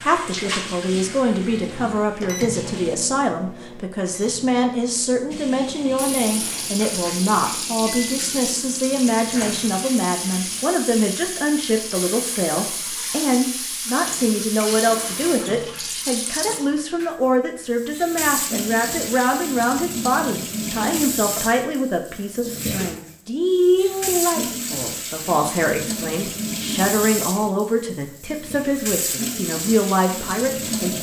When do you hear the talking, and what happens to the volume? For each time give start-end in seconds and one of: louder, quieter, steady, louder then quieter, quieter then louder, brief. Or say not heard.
0.0-30.9 steady.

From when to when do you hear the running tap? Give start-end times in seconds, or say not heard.
0.0-3.0, 5.3-30.9.